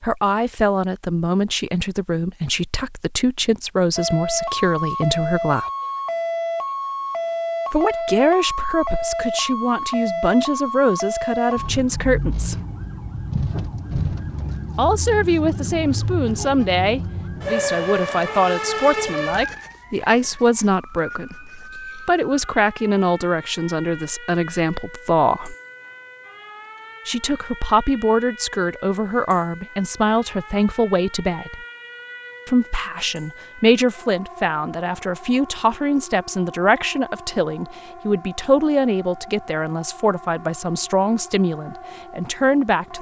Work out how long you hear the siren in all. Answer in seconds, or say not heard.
39 s.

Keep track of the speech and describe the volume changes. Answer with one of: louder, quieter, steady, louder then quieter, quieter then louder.
steady.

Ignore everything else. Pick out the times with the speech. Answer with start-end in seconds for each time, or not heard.
0.0-5.7, 7.7-12.6, 14.8-25.6, 27.1-31.6, 32.5-42.9.